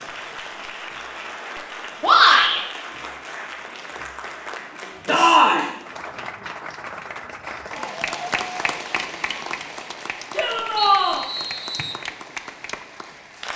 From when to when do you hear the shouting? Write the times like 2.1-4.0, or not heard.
2.0-2.6, 5.0-5.7, 10.3-11.2.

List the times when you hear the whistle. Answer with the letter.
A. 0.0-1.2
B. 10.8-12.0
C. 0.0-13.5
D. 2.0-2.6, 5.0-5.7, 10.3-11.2
B.